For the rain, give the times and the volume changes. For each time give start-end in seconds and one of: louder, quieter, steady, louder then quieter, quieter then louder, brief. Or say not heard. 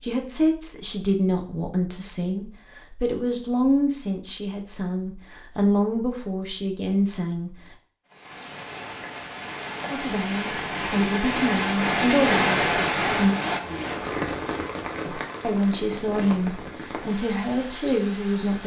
8.1-18.6 louder then quieter.